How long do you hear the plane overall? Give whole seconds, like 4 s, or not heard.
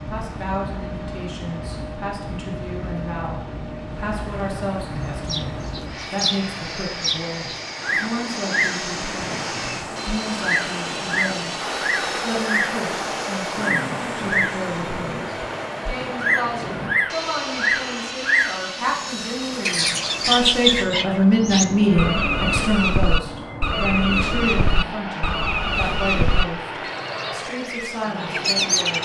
29 s.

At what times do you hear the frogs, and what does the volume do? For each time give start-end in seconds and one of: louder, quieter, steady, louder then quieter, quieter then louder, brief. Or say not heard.
not heard.